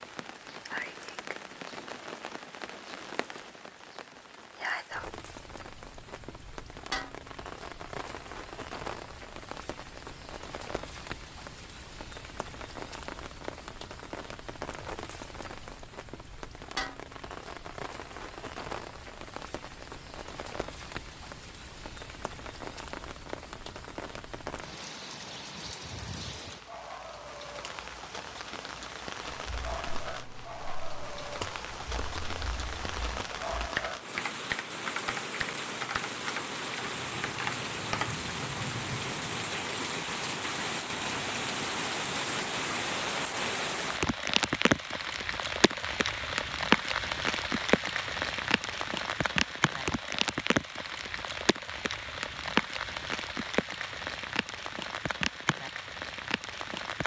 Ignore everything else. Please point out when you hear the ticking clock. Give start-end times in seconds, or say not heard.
not heard.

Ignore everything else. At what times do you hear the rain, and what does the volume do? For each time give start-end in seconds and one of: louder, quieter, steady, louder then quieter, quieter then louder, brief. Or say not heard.
0.0-57.0 louder.